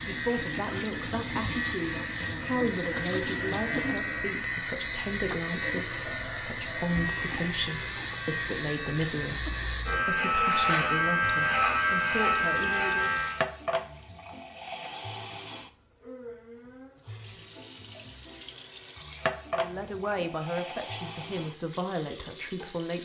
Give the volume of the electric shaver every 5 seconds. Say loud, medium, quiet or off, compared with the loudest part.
loud, loud, loud, off, off.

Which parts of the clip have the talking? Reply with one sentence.
The talking can be heard from 0.1 to 13.1 s and from 19.6 to 22.9 s.